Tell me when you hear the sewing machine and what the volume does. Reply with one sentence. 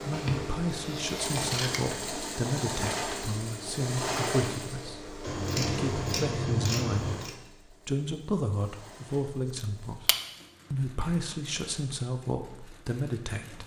The sewing machine can be heard from 0.0 to 13.6 s, getting quieter.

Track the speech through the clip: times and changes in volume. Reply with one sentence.
The speech can be heard from 0.0 to 10.1 s, at a steady volume; and briefly from 10.7 to 13.6 s.